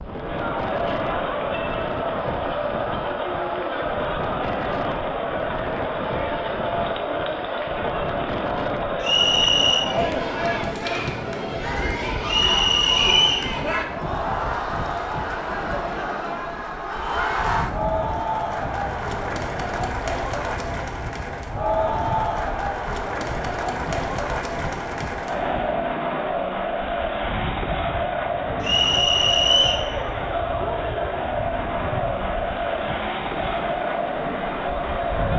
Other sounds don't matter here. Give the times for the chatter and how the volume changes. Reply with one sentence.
You can hear the chatter from 0.0 to 35.3 s, at a steady volume.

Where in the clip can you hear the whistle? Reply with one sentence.
You can hear the whistle from 9.0 to 9.9 s, from 12.2 to 13.5 s and from 28.6 to 29.9 s.